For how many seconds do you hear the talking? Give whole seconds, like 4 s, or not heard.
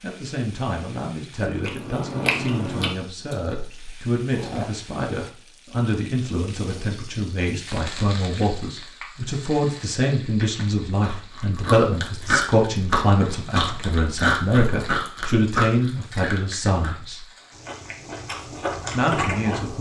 18 s.